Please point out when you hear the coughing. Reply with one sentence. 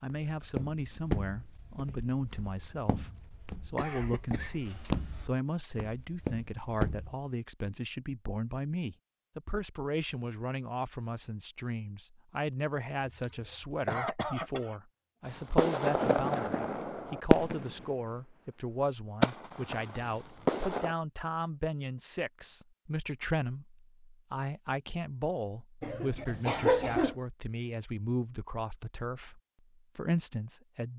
You can hear the coughing from 3.8 to 4.7 s, from 13.0 to 14.8 s and from 25.8 to 27.1 s.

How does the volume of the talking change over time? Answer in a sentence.
The loudness of the talking stays about the same.